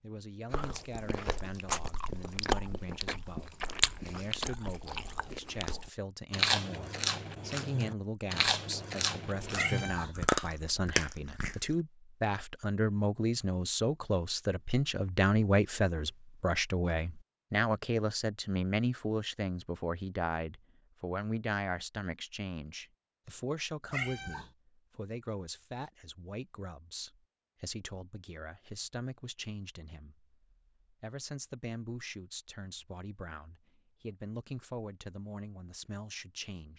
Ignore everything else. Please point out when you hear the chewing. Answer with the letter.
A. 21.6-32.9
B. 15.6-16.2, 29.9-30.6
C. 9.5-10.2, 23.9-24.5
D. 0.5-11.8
D.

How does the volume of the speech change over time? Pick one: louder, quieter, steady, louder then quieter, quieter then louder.
louder then quieter.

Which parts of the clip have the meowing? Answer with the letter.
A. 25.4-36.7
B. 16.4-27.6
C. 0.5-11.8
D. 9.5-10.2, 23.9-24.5
D.